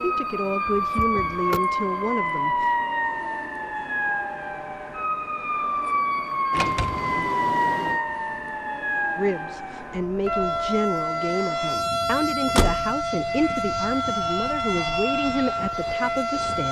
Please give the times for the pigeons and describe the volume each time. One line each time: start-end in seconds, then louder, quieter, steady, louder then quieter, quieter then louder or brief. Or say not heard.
not heard.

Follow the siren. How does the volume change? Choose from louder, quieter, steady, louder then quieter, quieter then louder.
steady.